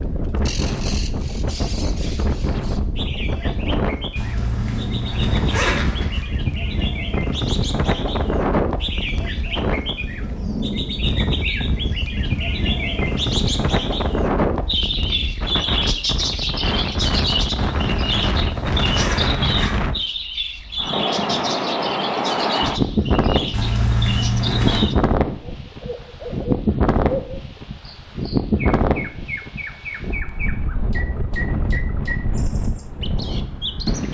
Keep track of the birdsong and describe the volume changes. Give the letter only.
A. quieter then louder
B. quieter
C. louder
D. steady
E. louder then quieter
E.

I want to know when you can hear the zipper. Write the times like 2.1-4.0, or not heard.
4.2-6.2, 17.6-19.7, 23.5-24.9.